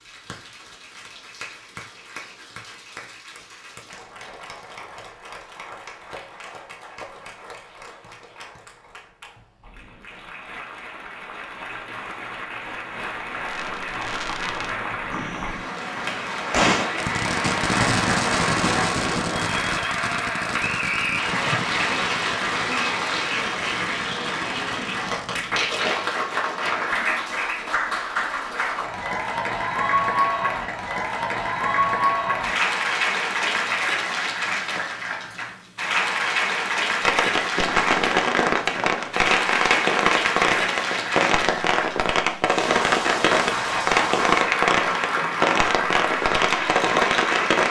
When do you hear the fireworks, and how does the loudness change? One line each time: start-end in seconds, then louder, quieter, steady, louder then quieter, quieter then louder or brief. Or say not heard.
13.4-25.4 louder then quieter
37.0-47.6 steady.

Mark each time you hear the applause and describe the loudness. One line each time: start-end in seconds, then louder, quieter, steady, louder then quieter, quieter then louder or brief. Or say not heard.
0.0-47.6 louder.